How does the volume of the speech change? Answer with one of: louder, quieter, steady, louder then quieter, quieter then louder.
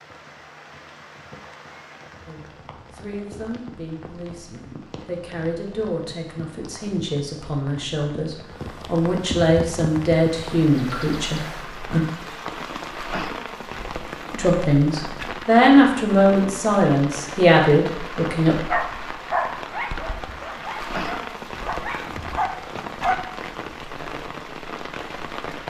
louder.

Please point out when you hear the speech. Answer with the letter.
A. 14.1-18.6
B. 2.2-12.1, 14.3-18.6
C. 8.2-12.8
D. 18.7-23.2
B.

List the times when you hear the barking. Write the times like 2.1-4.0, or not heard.
18.7-23.2.